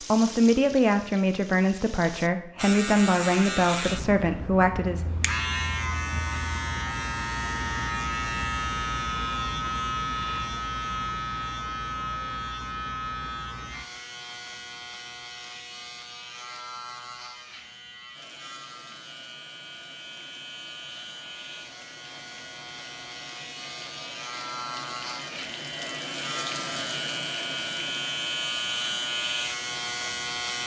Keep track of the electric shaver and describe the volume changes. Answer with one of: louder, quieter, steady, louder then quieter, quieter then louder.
quieter then louder.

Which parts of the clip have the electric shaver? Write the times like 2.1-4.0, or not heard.
2.5-30.6.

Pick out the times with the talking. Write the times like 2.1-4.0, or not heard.
0.0-5.1.